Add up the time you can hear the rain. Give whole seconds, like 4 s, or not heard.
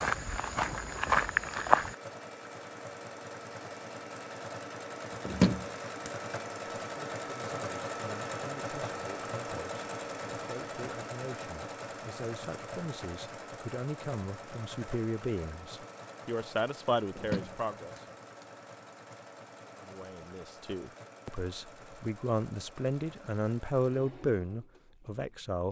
not heard.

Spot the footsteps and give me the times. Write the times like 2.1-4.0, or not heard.
0.0-1.9.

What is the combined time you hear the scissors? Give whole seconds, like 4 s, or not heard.
2 s.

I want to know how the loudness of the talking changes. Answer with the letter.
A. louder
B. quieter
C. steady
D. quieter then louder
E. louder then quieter
A.